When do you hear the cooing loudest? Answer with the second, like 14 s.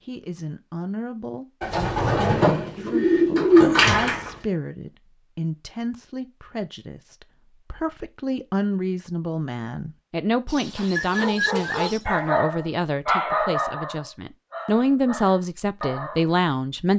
4 s.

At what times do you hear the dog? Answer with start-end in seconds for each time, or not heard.
10.4-16.4.